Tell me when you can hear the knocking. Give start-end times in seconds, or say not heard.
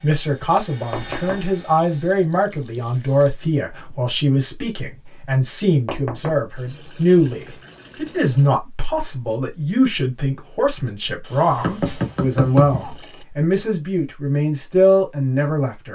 0.9-1.4, 5.8-6.4, 11.6-13.0.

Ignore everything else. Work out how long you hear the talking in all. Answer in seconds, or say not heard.
16 s.